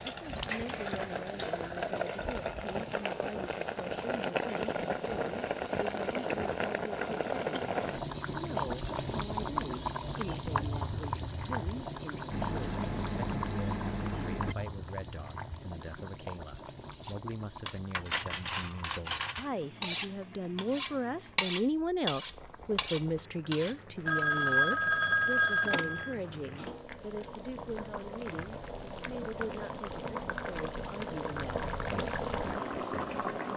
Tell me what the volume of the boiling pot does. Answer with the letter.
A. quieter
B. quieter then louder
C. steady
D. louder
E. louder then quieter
B.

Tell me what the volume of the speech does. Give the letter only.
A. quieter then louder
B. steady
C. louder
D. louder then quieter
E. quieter
D.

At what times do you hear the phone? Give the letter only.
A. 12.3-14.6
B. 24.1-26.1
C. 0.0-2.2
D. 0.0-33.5
B.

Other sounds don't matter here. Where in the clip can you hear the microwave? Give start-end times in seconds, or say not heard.
12.3-14.6.